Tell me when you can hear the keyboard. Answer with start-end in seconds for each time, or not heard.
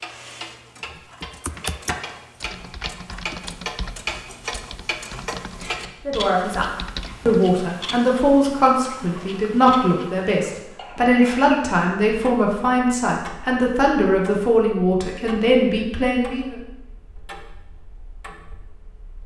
1.0-7.4.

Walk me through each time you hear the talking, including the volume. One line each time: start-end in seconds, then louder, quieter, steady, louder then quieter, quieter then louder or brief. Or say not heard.
6.0-16.6 steady.